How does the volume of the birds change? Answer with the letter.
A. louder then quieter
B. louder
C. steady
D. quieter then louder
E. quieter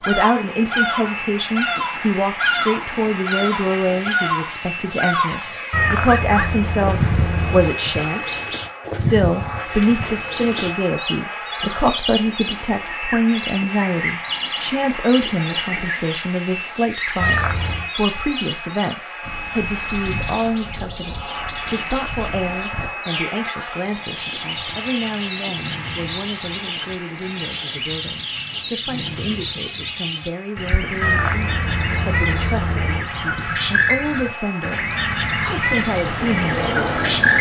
D.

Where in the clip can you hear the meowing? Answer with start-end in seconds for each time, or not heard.
5.7-7.8, 17.2-17.9, 31.0-33.0.